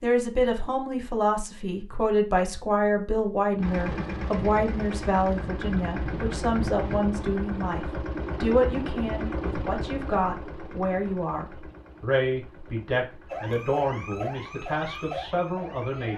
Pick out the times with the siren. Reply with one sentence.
You can hear the siren from 13.2 to 16.1 s.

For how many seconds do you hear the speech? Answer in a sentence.
You can hear the speech for 16 seconds altogether.